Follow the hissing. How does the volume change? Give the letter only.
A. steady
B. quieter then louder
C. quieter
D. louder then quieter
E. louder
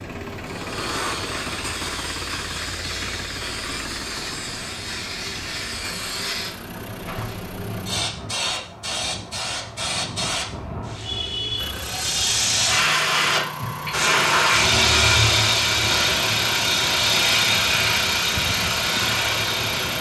E.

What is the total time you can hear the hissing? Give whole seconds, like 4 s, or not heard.
20 s.